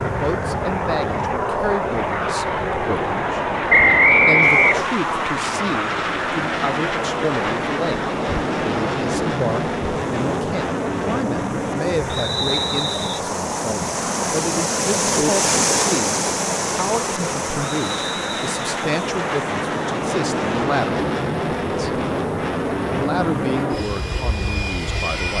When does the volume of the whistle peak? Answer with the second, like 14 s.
4 s.